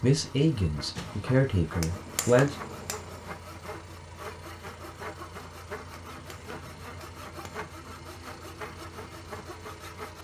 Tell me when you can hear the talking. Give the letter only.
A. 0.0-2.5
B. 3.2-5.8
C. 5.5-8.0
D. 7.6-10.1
A.